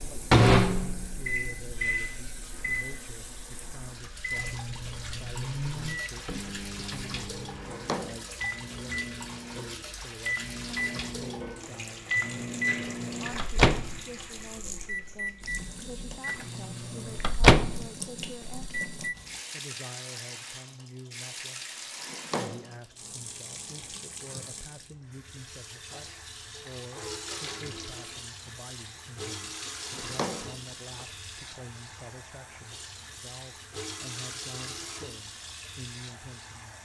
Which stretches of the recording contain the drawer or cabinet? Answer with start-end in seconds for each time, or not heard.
7.5-8.3, 21.9-22.8, 29.8-31.1.